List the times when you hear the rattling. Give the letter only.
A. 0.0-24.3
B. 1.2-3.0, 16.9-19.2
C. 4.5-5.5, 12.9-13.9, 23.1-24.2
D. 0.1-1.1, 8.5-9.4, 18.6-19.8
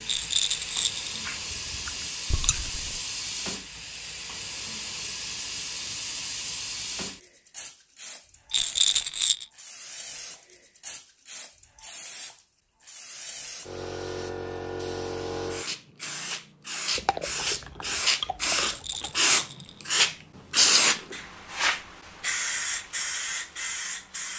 D.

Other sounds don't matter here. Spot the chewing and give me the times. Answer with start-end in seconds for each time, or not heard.
1.2-3.0, 16.9-19.2.